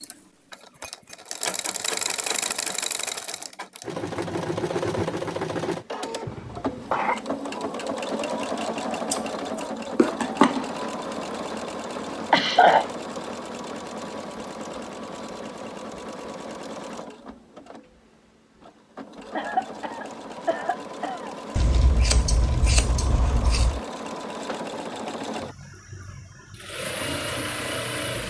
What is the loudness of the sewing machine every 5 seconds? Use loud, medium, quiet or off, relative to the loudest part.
loud, loud, loud, medium, medium, loud.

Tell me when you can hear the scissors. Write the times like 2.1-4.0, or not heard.
9.1-10.7, 21.6-23.8.